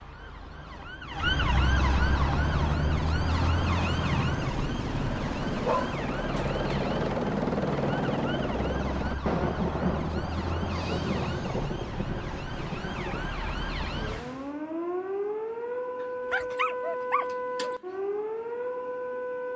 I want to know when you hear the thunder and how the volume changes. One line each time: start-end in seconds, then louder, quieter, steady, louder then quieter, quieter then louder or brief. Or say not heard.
9.2-14.1 quieter.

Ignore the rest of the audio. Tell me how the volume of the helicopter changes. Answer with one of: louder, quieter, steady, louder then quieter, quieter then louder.
louder.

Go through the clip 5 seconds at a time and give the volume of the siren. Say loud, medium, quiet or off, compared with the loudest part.
loud, medium, medium, loud.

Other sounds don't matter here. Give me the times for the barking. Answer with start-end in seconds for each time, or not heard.
5.5-6.7, 16.0-17.8.